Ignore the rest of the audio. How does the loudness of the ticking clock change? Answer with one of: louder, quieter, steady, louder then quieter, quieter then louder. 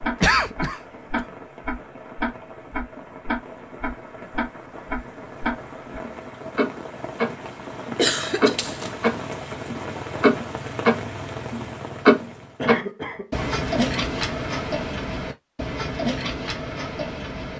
louder then quieter.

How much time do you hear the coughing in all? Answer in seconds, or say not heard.
3 s.